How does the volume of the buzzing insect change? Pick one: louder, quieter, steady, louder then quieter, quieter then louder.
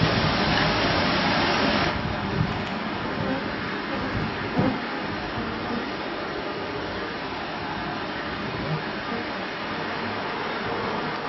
quieter then louder.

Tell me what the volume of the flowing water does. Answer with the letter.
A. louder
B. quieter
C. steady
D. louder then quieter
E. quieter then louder
B.